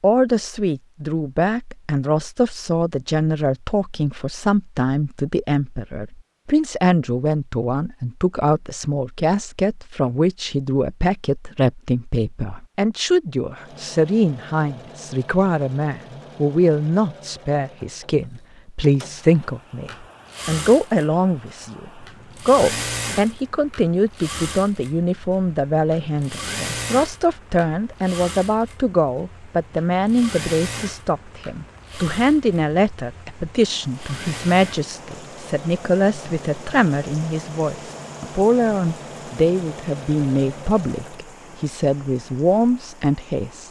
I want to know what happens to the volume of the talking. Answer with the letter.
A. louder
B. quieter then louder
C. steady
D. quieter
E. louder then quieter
C.